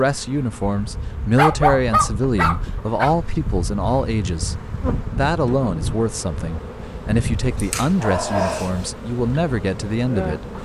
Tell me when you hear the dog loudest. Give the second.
2 s.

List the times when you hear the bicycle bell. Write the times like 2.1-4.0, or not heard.
not heard.